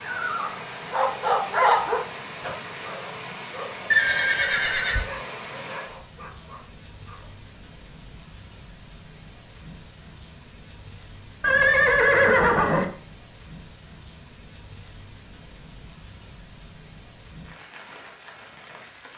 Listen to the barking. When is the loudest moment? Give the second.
2 s.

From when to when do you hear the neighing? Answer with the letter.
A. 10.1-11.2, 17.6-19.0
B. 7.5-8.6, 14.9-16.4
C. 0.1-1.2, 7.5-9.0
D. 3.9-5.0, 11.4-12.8
D.